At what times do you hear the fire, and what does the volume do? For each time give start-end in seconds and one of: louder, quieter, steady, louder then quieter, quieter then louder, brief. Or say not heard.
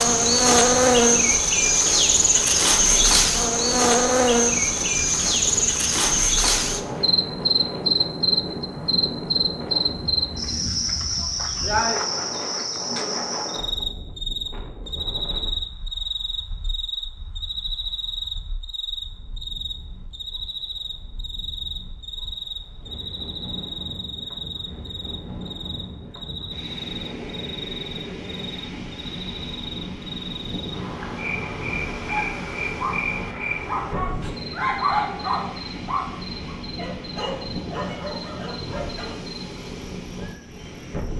not heard.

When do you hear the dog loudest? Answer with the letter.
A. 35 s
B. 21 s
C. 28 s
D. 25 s
A.